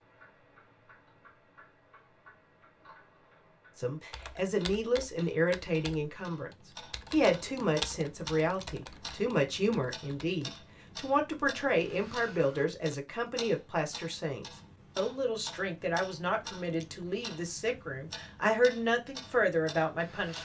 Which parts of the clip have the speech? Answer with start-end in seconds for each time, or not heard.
3.8-6.5, 7.1-20.4.